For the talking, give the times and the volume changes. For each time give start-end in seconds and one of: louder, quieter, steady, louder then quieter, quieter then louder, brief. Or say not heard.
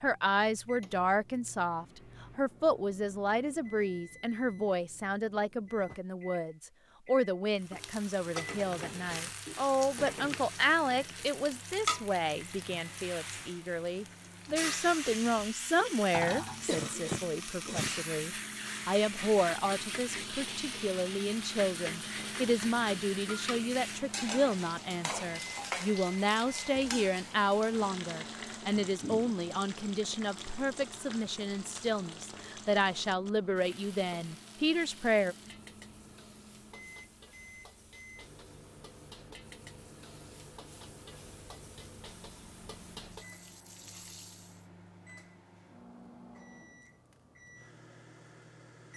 0.0-35.4 steady.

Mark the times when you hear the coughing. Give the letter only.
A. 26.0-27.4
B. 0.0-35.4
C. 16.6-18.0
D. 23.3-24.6
C.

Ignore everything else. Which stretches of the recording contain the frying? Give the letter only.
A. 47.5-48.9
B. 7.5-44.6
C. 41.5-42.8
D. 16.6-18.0
B.